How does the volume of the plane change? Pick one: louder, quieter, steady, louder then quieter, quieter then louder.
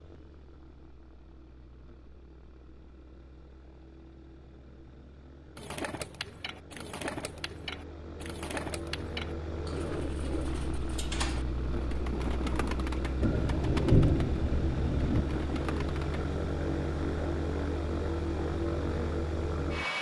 louder.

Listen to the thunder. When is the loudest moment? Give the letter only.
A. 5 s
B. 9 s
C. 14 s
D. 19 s
C.